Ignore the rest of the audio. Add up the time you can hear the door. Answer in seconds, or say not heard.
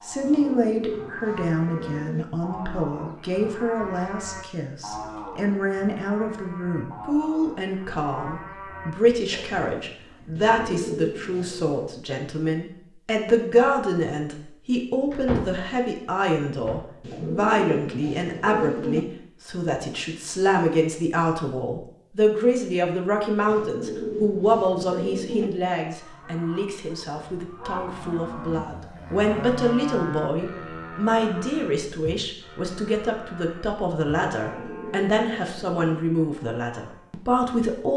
2 s.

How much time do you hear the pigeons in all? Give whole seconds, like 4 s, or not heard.
9 s.